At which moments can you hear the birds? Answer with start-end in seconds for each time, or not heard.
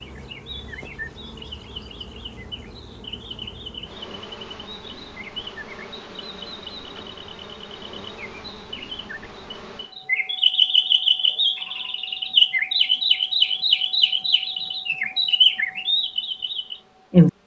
0.0-17.3.